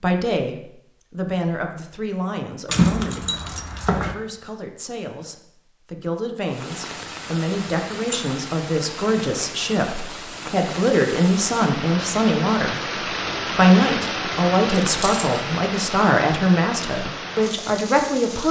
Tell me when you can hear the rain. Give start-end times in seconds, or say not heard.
6.5-18.4.